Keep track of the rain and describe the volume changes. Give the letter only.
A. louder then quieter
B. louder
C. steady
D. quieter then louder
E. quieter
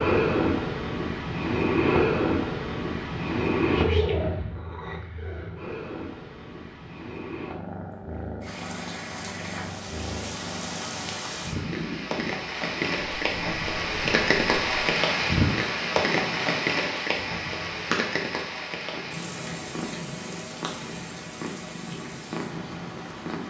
A.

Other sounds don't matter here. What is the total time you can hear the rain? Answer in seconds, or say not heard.
15 s.